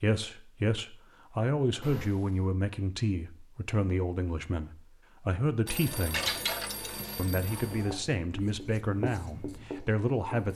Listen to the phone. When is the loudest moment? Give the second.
6 s.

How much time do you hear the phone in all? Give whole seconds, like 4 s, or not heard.
3 s.